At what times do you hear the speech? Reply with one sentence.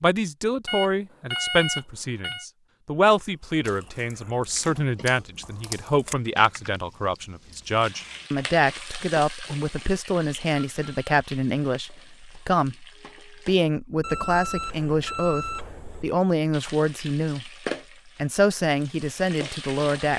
The speech can be heard from 0.0 to 12.8 s, from 13.4 to 17.5 s and from 18.1 to 20.1 s.